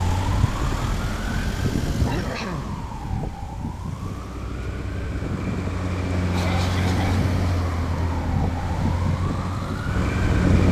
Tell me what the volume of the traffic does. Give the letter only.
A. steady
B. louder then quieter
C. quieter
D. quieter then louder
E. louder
D.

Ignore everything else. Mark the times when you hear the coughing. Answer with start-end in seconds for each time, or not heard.
2.0-2.8, 6.3-7.2.